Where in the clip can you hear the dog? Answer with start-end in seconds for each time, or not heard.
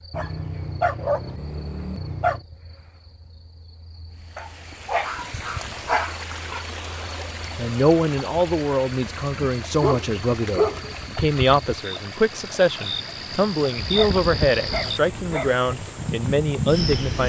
0.1-2.4, 4.3-6.7, 9.1-10.9, 13.8-15.6.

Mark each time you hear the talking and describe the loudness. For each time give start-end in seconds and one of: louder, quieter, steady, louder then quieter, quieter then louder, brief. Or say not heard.
7.5-17.2 steady.